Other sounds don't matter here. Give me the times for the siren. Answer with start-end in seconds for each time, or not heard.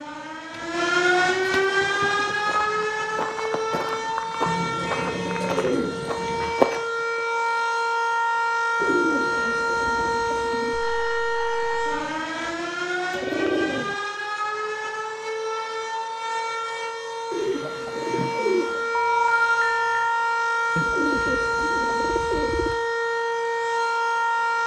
0.0-24.6.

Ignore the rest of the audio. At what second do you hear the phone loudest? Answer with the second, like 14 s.
19 s.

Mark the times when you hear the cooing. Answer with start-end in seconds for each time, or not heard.
0.5-2.4, 4.5-6.5, 8.8-10.8, 13.1-13.9, 17.3-18.9, 20.8-22.8.